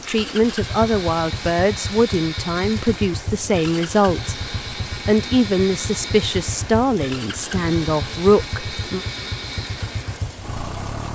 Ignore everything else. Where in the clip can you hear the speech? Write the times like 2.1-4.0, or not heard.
0.1-4.3, 5.0-9.0.